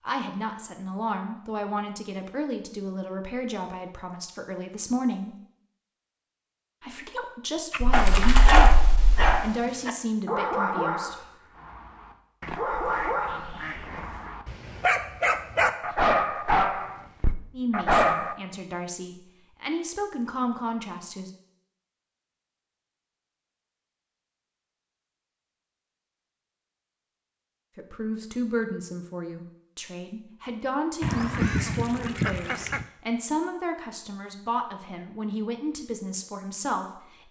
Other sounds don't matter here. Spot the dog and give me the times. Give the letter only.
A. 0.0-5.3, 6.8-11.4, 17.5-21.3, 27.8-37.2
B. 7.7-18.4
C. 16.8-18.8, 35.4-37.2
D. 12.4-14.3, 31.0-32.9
B.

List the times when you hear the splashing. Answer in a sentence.
The splashing can be heard from 7.8 to 9.3 s.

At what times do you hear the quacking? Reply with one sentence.
You can hear the quacking from 12.4 to 14.3 s and from 31.0 to 32.9 s.